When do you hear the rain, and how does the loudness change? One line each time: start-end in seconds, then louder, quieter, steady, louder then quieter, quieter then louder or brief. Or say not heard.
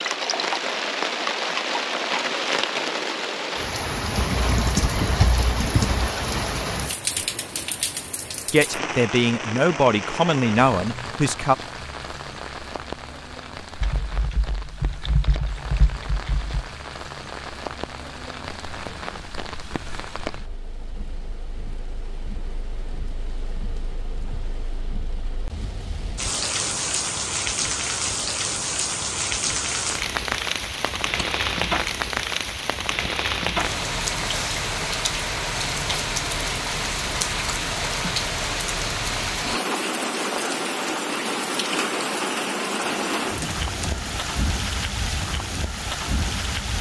0.0-46.7 quieter then louder.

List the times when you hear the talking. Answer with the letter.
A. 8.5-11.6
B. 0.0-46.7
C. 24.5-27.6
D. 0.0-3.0
A.